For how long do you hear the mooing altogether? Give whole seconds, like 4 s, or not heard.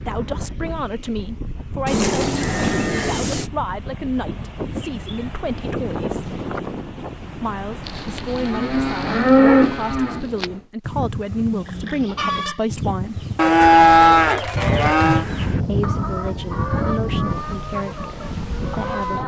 6 s.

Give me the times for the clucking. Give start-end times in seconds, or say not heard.
11.5-19.2.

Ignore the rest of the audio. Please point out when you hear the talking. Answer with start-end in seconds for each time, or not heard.
0.1-6.3, 7.4-13.2, 15.7-19.2.